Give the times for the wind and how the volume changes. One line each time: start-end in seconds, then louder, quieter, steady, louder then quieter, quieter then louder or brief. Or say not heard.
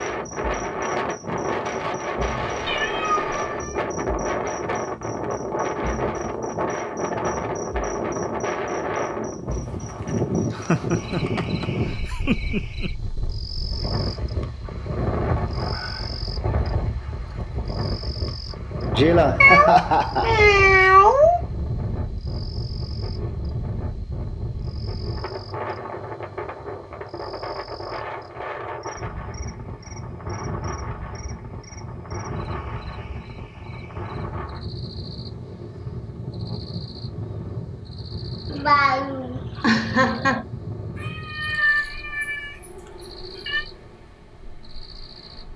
0.0-45.5 quieter.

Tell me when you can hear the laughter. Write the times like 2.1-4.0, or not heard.
10.5-12.9, 18.9-20.9, 38.5-40.5.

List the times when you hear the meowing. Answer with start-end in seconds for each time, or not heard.
2.6-3.8, 19.4-21.4, 41.0-43.6.